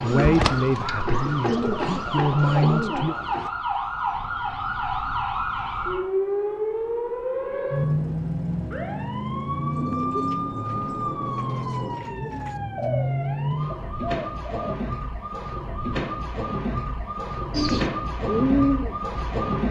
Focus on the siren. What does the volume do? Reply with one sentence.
The loudness of the siren stays about the same.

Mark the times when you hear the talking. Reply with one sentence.
You can hear the talking from 0.0 to 3.1 s.